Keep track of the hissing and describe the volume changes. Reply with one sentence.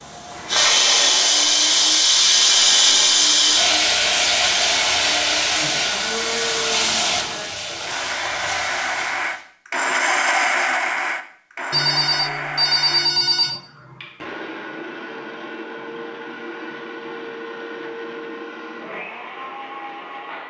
The loudness of the hissing goes down.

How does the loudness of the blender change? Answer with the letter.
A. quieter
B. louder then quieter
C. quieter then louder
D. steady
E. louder
B.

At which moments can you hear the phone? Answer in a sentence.
The phone can be heard from 11.7 to 13.6 s.